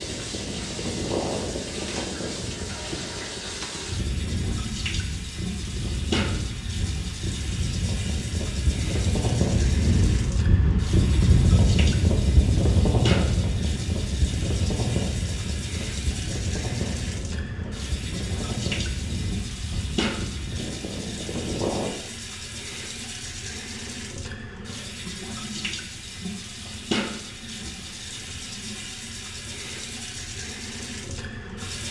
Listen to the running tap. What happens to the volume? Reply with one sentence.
The volume of the running tap stays about the same.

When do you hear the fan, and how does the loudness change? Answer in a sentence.
The fan can be heard from 0.0 to 21.9 s, getting louder then quieter.